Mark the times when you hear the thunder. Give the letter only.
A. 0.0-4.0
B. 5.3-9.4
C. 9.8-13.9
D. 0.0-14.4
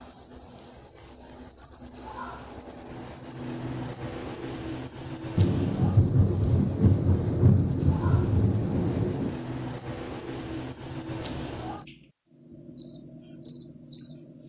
B.